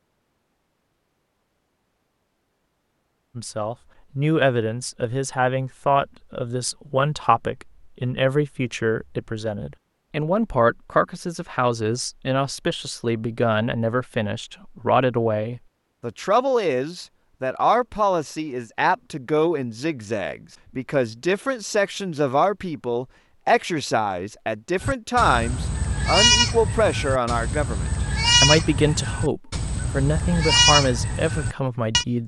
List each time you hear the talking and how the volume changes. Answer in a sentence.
You can hear the talking from 3.4 to 32.2 s, at a steady volume.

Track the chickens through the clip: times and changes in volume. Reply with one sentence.
The chickens can't be heard in this clip.